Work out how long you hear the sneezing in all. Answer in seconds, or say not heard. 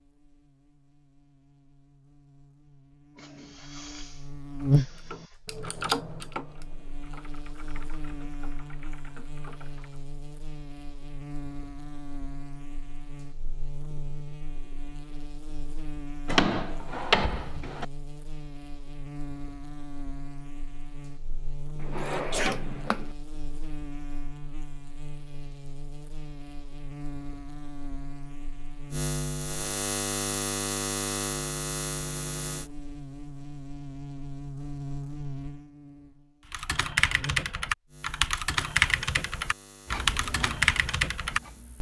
3 s.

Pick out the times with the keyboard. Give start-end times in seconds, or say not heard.
4.7-10.0, 36.5-41.7.